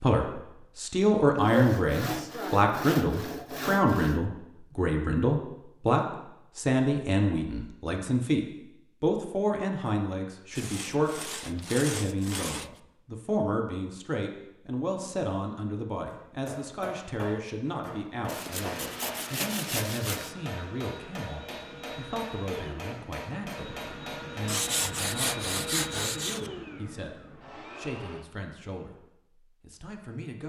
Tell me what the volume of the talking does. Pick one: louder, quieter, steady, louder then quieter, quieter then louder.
quieter.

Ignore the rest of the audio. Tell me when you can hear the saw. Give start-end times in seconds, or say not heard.
1.4-4.2, 10.6-12.8, 18.2-20.3, 24.4-26.5.